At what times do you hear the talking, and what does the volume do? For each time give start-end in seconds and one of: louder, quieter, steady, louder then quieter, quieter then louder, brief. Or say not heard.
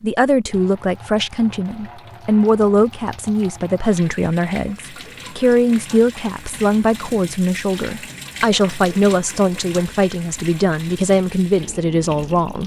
0.0-12.6 steady.